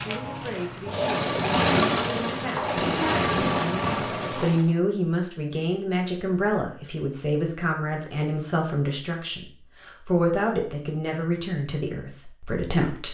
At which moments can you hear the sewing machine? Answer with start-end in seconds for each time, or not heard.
0.0-4.8.